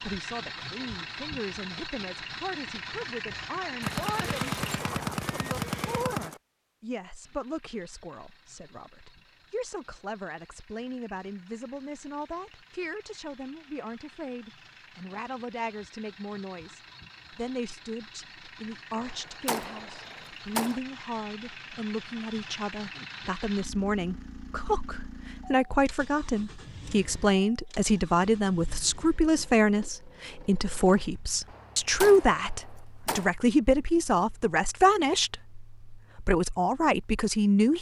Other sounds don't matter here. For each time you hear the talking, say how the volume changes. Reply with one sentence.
You can hear the talking from 0.0 to 37.7 s, getting louder.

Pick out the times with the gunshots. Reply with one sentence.
The gunshots can be heard from 3.8 to 6.4 s, from 18.9 to 20.8 s and from 31.4 to 33.3 s.